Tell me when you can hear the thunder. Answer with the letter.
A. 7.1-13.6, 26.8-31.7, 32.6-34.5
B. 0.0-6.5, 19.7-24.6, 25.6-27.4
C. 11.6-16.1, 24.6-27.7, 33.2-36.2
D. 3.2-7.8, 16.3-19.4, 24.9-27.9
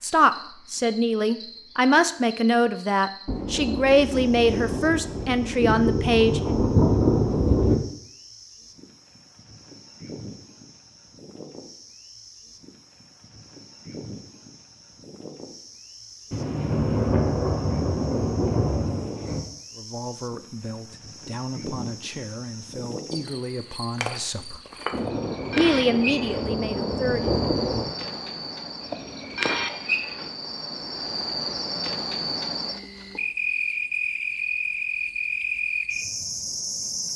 D.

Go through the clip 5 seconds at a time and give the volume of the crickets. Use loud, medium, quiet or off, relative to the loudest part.
quiet, quiet, quiet, quiet, medium, loud, loud, loud.